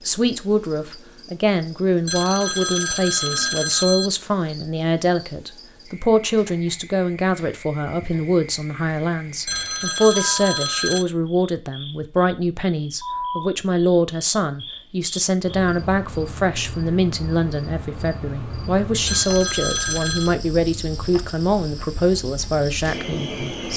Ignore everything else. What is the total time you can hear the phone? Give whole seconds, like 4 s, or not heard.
5 s.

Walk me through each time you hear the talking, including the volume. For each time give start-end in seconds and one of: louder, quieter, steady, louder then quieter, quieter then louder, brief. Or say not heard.
0.1-23.7 steady.